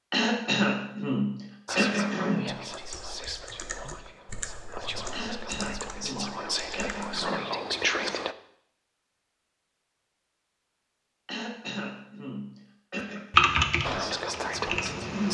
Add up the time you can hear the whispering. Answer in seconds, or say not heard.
8 s.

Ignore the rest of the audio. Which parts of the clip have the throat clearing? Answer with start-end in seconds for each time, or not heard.
0.1-2.5, 5.1-7.5, 11.2-13.3.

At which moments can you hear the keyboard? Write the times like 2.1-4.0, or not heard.
2.7-7.2, 13.3-15.2.